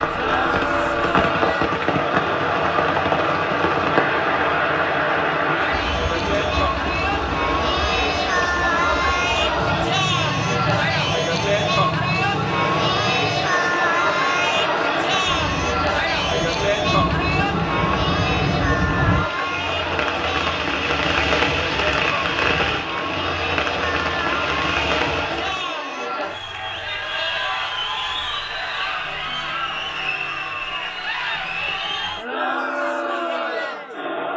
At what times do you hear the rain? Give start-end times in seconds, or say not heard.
0.0-25.8.